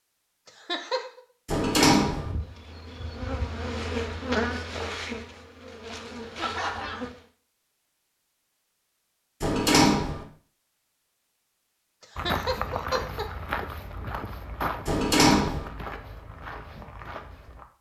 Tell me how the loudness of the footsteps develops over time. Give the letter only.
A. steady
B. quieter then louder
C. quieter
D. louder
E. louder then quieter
C.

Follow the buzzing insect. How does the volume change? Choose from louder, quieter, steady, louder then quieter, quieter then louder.
louder then quieter.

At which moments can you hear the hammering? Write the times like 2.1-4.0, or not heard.
not heard.